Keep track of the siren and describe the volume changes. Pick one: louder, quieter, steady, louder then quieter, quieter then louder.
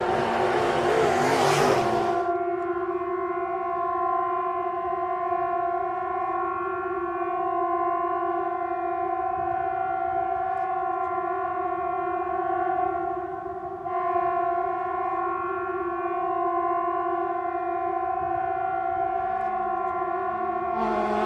steady.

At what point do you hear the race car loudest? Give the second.
1 s.